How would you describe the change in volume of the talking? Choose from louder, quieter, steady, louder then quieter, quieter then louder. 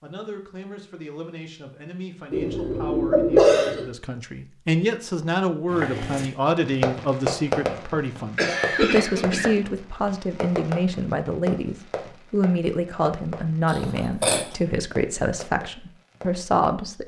louder.